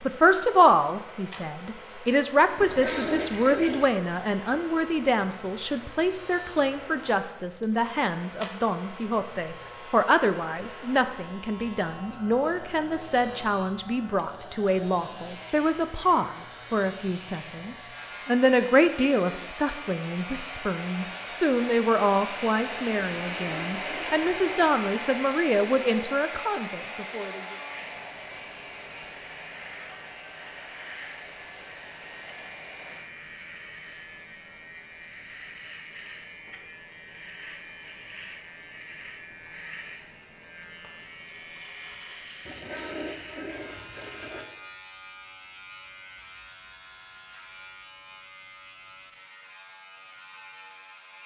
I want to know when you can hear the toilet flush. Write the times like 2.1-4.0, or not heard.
2.5-3.9, 23.1-24.6, 42.5-44.5.